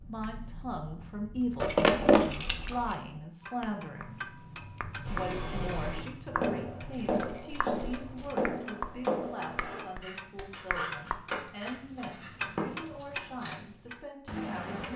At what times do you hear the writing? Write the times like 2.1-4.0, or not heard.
5.0-13.6.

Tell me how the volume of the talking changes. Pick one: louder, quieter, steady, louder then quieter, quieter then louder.
quieter.